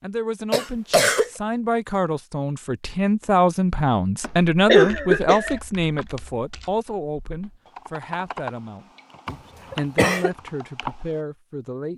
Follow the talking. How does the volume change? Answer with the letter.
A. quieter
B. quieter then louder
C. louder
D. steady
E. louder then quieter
E.